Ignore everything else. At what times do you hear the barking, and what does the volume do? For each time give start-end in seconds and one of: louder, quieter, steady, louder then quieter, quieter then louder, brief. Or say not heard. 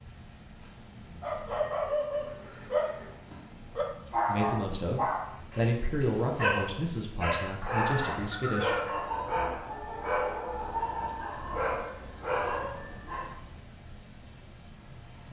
1.2-13.3 steady.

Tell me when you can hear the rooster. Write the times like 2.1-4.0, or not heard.
7.6-8.9.